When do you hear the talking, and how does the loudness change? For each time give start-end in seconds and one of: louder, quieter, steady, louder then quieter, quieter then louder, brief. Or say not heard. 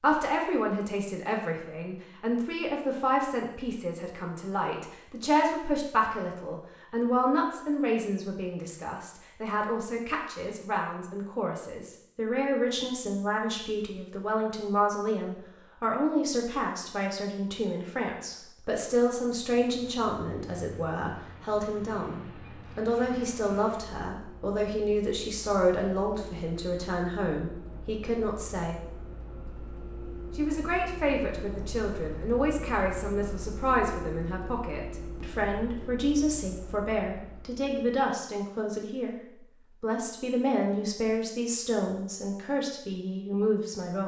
0.0-28.8 steady
30.4-44.0 steady.